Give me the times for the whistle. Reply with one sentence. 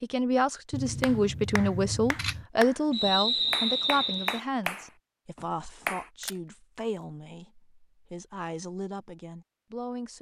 The whistle can be heard from 2.9 to 4.4 s.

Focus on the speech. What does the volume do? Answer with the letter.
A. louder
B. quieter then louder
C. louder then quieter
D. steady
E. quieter
E.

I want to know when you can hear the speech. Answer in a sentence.
You can hear the speech from 0.0 to 10.1 s.